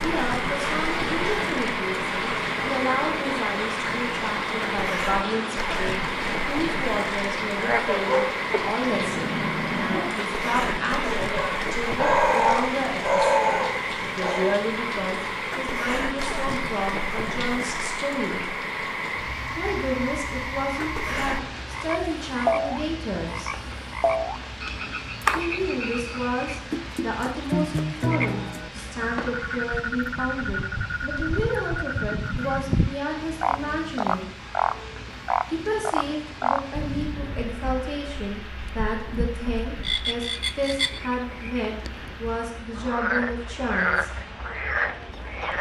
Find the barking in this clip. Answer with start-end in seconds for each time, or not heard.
7.5-14.6.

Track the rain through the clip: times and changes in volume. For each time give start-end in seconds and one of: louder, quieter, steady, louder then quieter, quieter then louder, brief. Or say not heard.
0.0-45.5 quieter.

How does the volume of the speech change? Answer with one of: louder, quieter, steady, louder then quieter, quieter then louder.
steady.